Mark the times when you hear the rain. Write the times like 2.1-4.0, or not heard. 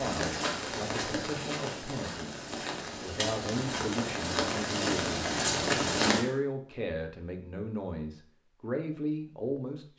0.0-6.2.